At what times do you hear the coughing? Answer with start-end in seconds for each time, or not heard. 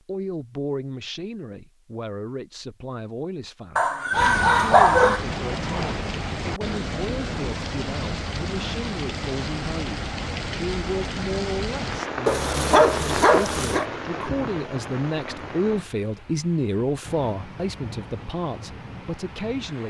not heard.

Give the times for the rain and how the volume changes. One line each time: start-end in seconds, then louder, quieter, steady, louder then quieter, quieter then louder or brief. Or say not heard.
4.1-19.8 quieter.